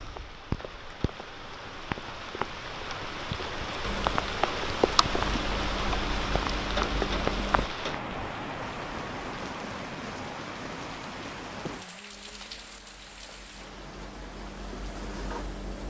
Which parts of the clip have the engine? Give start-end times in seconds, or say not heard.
3.8-7.7, 12.1-15.8.